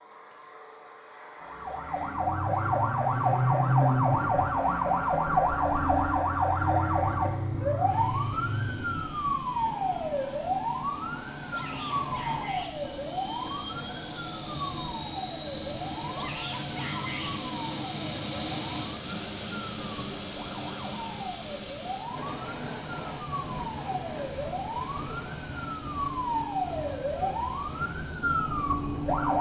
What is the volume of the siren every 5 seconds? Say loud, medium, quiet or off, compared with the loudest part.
loud, loud, medium, quiet, quiet, medium.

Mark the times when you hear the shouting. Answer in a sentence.
The shouting can be heard from 11.5 to 12.7 s and from 16.1 to 17.4 s.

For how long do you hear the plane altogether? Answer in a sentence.
You can hear the plane for 29 seconds altogether.